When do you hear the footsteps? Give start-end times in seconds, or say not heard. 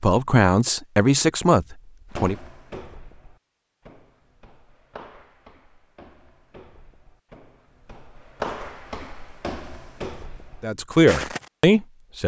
2.1-11.7.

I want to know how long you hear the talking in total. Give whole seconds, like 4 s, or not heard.
4 s.